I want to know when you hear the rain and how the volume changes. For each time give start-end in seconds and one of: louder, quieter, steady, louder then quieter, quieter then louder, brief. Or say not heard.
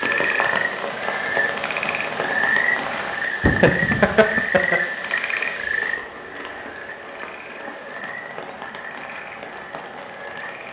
0.0-10.6 quieter.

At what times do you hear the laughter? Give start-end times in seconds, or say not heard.
3.4-4.8.